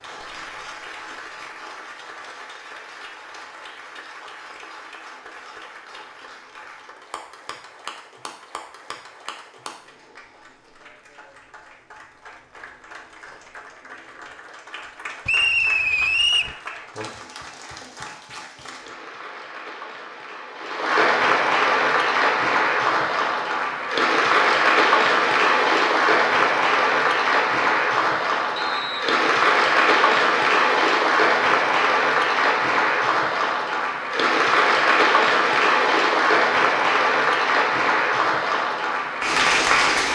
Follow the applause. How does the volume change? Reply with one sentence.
The loudness of the applause goes up.